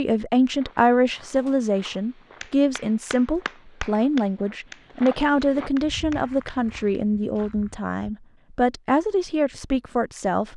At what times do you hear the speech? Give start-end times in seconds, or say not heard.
0.0-10.5.